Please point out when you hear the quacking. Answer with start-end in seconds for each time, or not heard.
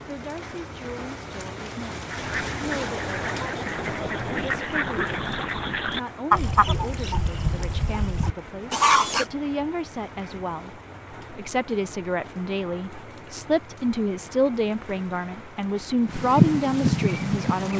2.1-9.2, 16.1-17.7.